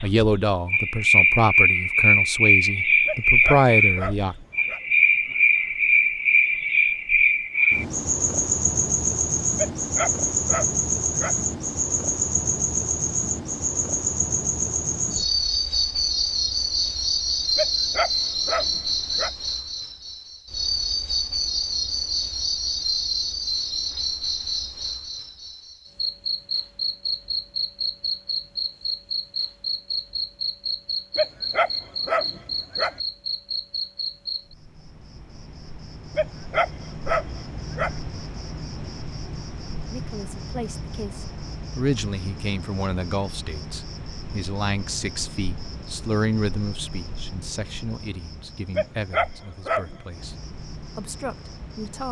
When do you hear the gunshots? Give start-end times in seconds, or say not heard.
not heard.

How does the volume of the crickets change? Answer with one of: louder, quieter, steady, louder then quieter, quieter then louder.
quieter.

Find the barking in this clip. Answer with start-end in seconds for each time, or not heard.
3.0-4.8, 9.6-11.4, 17.6-19.3, 31.1-33.0, 36.1-38.0, 48.8-50.1.